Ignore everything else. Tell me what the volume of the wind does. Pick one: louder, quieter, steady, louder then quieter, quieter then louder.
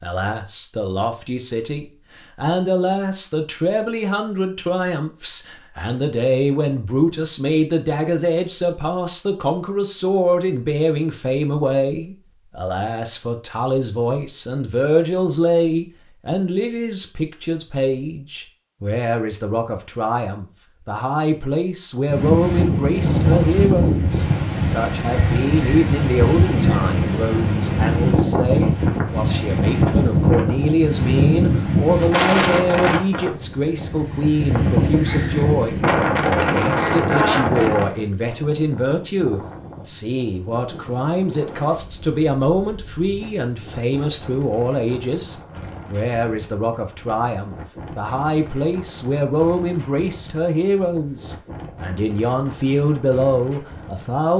quieter.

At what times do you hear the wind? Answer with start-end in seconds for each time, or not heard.
22.1-54.3.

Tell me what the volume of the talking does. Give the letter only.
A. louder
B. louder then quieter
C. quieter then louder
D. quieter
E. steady
E.